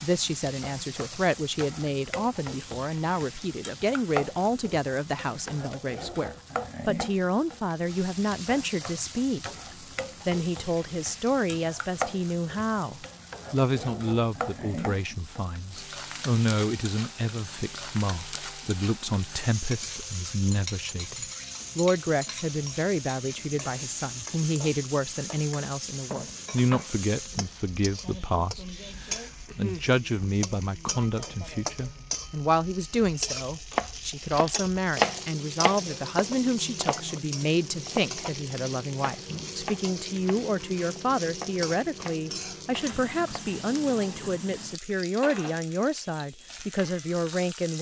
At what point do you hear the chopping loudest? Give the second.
35 s.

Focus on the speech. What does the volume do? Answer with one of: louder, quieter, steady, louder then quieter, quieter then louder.
steady.